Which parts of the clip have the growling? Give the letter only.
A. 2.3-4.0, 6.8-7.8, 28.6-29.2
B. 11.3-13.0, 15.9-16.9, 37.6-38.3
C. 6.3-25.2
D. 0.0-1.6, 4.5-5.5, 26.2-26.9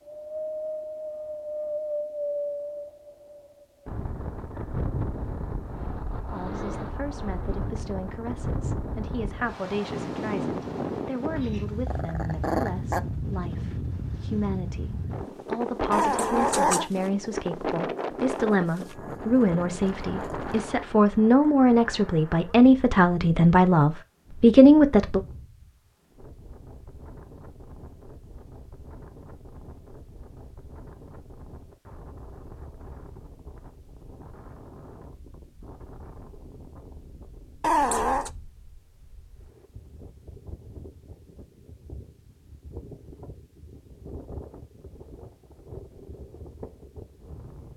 B.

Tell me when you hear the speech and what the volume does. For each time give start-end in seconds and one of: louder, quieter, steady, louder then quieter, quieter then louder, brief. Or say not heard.
6.3-25.2 louder.